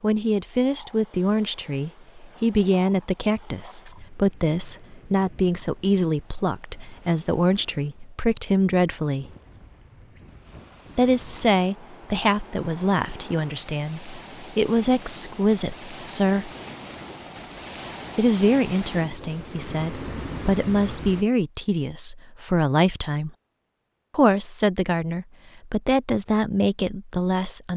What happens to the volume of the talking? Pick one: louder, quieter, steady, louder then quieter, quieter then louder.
steady.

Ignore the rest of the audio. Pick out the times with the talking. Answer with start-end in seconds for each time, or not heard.
0.0-9.2, 10.9-16.5, 18.1-23.3, 24.1-27.7.